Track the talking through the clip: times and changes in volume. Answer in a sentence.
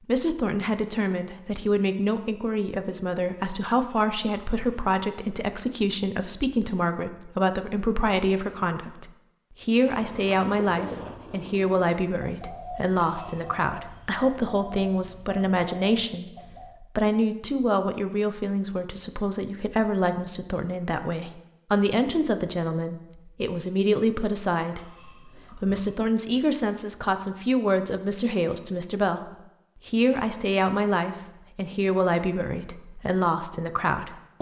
You can hear the talking from 0.1 to 34.3 s, at a steady volume.